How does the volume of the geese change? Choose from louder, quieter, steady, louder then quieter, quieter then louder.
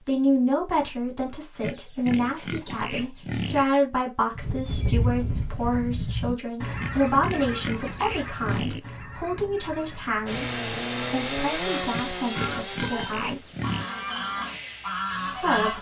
quieter then louder.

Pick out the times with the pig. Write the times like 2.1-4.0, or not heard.
1.6-3.6, 6.8-8.8, 11.9-13.8.